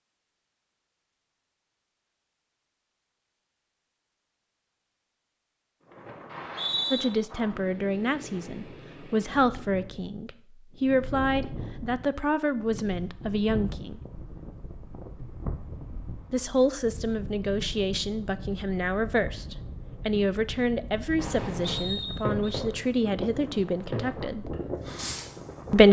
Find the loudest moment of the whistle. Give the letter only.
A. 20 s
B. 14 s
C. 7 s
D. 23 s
C.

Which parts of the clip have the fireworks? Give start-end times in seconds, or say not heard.
21.1-25.4.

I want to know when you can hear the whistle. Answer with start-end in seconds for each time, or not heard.
6.3-7.0, 21.6-22.4.